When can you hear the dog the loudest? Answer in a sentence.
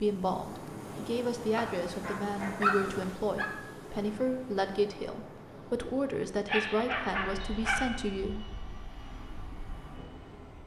The volume of the dog peaks at 3 seconds.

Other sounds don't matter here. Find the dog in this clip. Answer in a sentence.
The dog can be heard from 1.6 to 3.5 s and from 6.5 to 7.9 s.